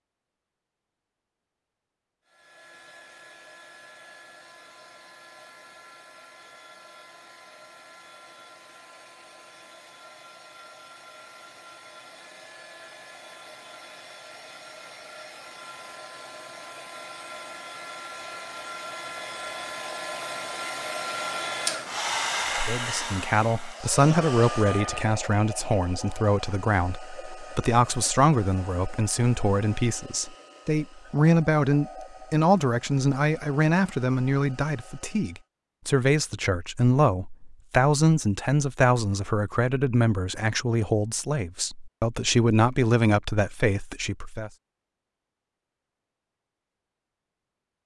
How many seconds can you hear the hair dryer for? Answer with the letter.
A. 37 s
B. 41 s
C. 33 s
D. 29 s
C.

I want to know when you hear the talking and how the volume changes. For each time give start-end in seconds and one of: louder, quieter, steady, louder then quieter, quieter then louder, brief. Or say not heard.
22.6-44.5 steady.